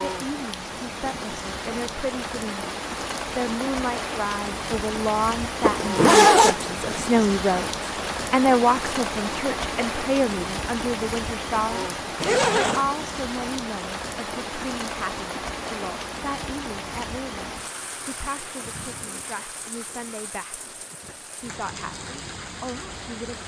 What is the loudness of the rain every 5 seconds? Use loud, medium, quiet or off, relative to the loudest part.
loud, loud, loud, medium, medium.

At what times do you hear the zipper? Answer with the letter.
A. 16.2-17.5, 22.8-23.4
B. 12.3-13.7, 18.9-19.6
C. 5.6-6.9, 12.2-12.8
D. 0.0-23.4
C.